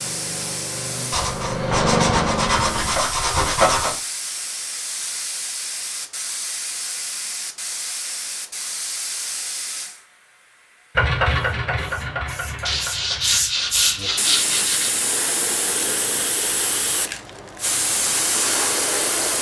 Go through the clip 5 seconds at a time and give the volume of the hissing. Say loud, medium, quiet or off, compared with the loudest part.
medium, medium, loud, loud.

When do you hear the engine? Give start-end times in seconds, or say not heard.
0.0-3.0, 10.9-13.4.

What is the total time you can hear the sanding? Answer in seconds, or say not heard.
5 s.